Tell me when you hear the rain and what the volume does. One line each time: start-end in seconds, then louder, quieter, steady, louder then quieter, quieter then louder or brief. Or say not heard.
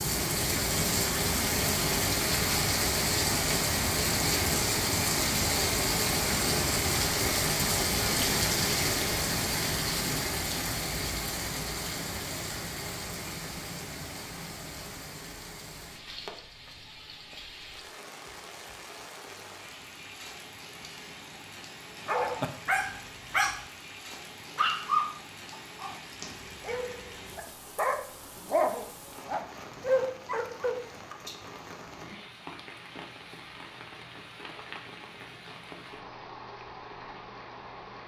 0.0-38.0 quieter.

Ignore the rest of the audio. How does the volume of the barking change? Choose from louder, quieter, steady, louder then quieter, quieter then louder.
quieter then louder.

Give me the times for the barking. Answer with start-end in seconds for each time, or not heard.
22.1-30.8.